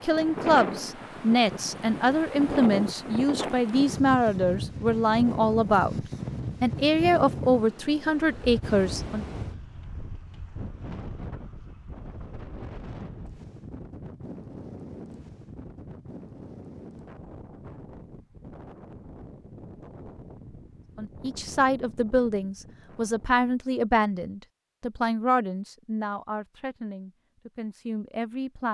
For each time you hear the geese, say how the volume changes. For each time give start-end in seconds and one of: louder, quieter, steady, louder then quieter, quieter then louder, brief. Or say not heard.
not heard.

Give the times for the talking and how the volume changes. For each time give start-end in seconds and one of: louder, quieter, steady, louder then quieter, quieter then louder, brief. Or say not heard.
0.0-9.2 steady
20.9-28.6 quieter.